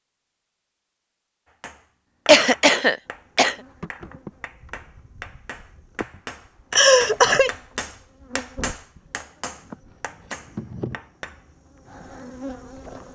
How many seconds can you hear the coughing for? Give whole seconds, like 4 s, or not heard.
2 s.